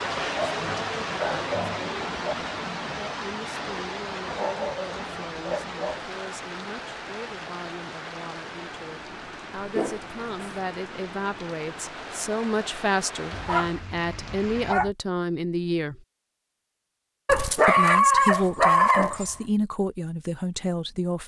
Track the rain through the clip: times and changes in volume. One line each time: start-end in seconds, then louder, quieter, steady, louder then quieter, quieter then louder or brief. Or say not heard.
0.0-14.8 quieter.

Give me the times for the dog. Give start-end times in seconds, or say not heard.
0.3-2.4, 4.3-6.0, 9.6-10.6, 13.3-14.9, 17.2-19.4.